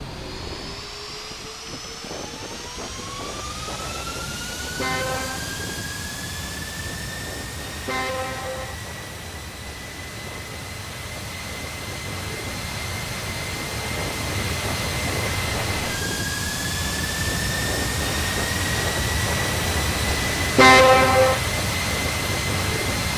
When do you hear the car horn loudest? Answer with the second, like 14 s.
21 s.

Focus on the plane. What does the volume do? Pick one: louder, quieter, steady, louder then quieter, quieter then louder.
louder.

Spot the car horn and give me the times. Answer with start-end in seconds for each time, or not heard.
4.8-5.4, 7.8-8.8, 20.6-21.4.